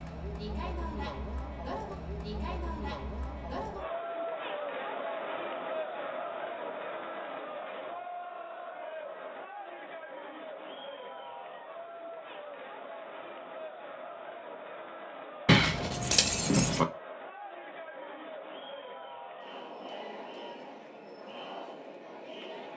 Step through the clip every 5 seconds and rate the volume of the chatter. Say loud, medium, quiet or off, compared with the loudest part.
loud, loud, medium, medium, medium.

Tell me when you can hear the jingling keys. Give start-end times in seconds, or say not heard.
15.4-16.9.